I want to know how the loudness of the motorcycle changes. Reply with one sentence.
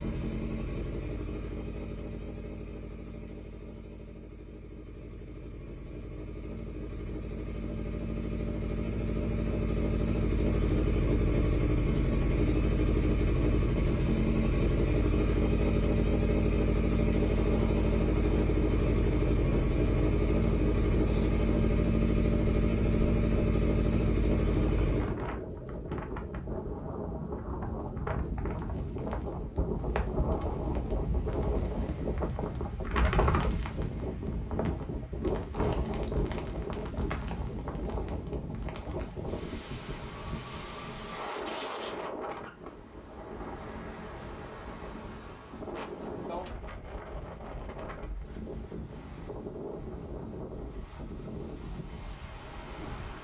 The volume of the motorcycle goes up.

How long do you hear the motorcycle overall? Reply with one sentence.
The motorcycle can be heard for 25 seconds in total.